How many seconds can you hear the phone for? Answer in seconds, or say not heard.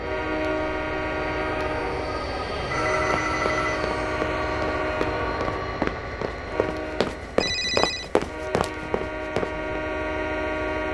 2 s.